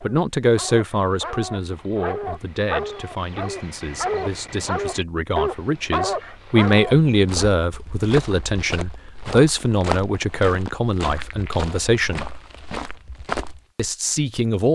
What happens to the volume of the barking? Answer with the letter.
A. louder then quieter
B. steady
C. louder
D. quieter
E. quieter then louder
C.